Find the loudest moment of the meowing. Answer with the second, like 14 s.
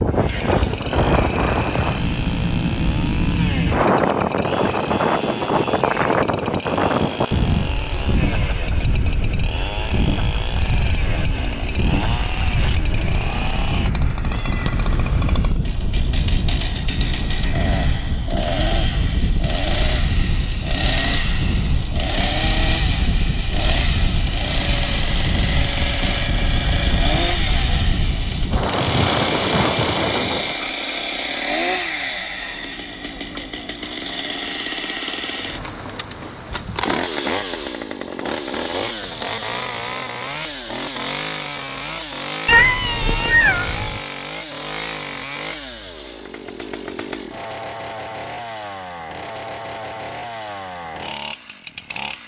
43 s.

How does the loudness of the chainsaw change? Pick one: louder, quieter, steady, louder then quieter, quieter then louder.
louder then quieter.